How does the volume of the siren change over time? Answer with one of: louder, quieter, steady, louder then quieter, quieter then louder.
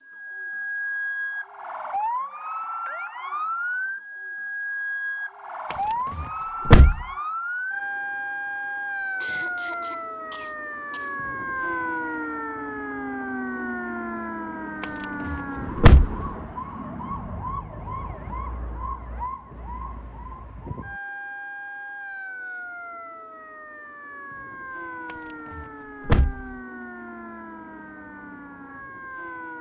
quieter.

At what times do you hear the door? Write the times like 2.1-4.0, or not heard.
5.7-7.0, 14.8-16.2, 25.6-26.4.